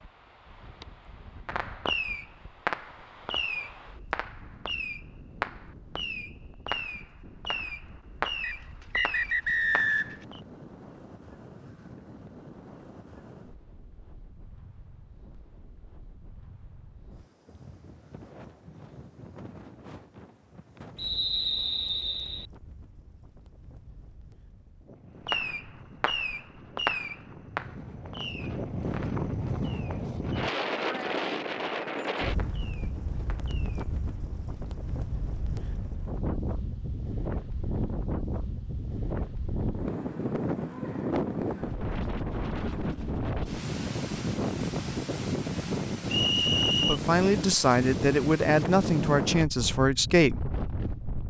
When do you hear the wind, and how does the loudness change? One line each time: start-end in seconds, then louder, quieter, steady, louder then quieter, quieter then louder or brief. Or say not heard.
0.0-51.2 louder.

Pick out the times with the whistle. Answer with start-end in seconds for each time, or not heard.
8.4-10.2, 20.9-22.4, 46.1-47.0.